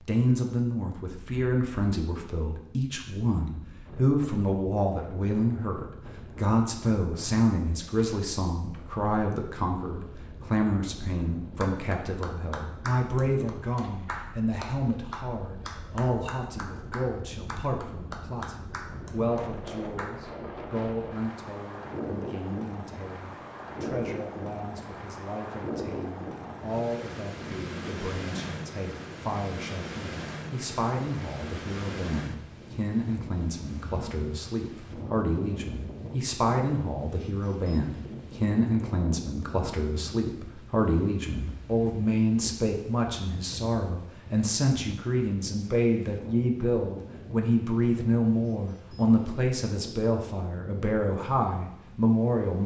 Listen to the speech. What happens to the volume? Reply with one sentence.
The loudness of the speech goes down, then up.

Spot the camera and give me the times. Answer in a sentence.
You can't hear the camera here.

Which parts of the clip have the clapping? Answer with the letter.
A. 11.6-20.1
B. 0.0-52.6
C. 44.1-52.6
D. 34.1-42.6
A.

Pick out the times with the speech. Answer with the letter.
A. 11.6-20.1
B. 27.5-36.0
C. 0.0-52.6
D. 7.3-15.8
C.